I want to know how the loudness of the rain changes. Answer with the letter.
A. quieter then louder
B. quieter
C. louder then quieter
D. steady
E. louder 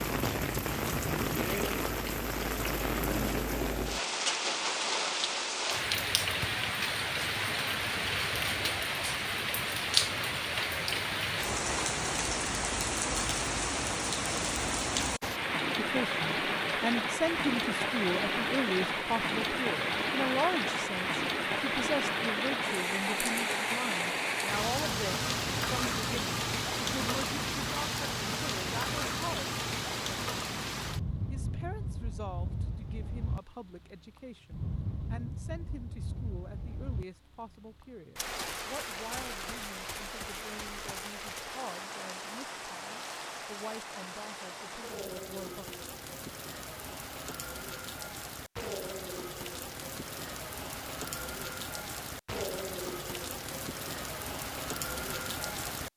B.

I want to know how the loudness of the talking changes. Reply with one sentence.
The loudness of the talking goes down.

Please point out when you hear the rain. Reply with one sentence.
You can hear the rain from 0.0 to 55.9 s.